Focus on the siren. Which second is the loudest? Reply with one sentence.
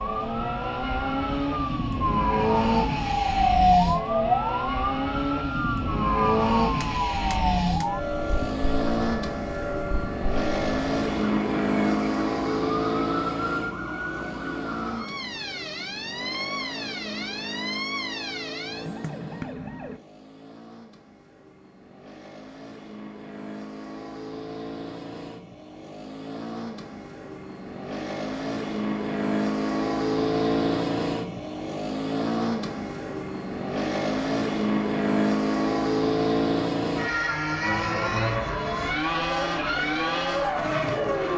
The volume of the siren peaks at 4 seconds.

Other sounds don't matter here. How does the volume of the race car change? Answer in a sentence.
The volume of the race car goes down, then up.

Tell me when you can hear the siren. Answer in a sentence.
You can hear the siren from 0.0 to 20.0 s.